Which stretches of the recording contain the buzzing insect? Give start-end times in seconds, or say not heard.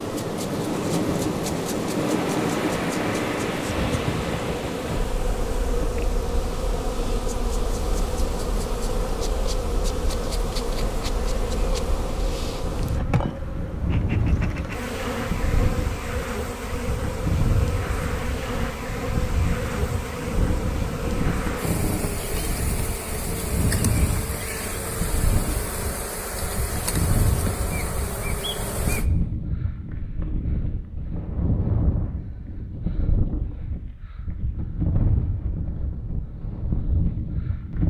0.0-29.1.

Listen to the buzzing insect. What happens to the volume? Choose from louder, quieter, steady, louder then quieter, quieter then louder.
steady.